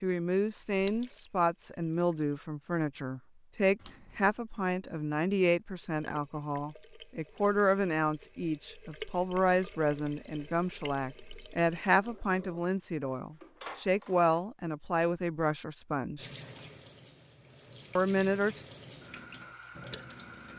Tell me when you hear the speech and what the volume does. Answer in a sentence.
The speech can be heard from 0.0 to 16.3 s, at a steady volume; and briefly from 17.9 to 18.6 s.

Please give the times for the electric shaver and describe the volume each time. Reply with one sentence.
You can't hear the electric shaver here.